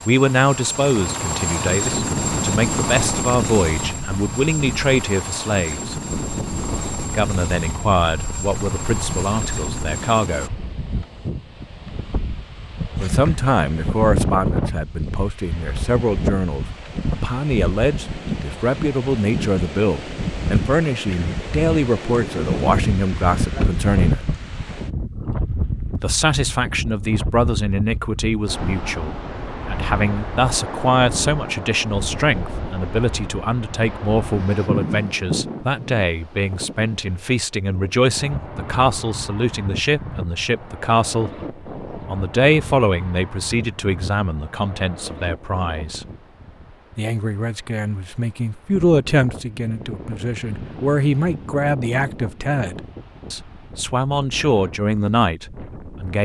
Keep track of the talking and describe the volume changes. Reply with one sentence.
The loudness of the talking stays about the same.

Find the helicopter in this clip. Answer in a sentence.
You can hear the helicopter from 0.0 to 10.5 s.